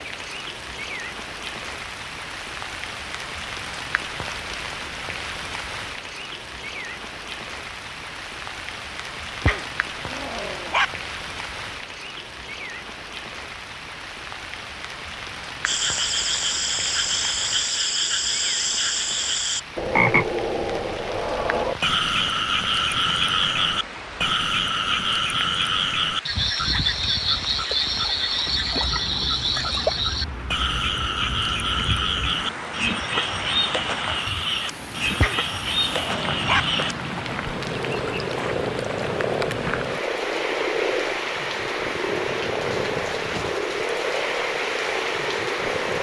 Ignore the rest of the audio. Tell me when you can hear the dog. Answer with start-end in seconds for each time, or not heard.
9.4-10.8, 35.1-36.6.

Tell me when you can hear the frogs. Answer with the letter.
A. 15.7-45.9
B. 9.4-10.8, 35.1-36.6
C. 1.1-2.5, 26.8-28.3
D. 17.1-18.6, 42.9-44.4
A.